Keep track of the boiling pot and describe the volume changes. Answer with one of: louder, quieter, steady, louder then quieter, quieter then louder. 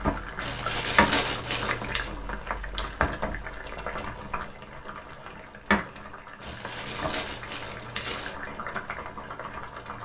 quieter.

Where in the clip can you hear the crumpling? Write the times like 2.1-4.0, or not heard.
0.3-2.1, 6.4-8.3.